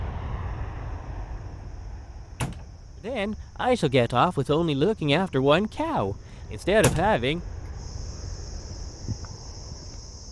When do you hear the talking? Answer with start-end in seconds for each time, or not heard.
3.0-7.4.